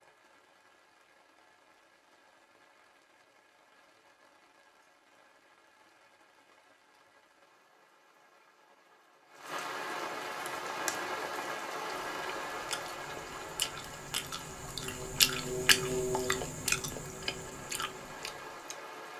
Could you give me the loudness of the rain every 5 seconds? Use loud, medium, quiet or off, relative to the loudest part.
quiet, medium, loud, medium.